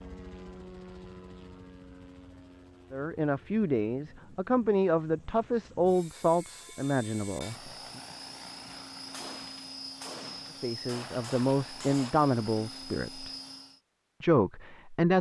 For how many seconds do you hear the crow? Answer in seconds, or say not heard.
not heard.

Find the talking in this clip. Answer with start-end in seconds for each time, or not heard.
2.9-8.0, 10.6-13.3, 14.2-15.1.